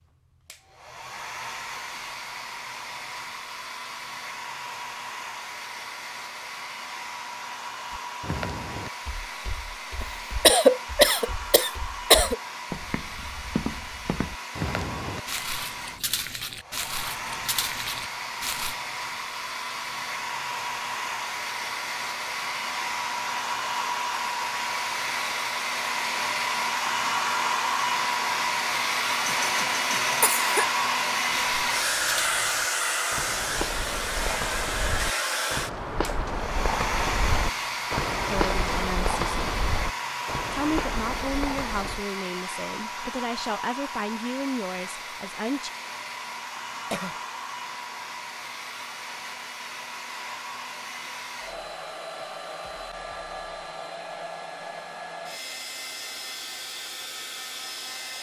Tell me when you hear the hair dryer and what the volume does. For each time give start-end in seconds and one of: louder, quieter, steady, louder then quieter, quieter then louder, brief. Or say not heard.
0.0-58.1 louder then quieter.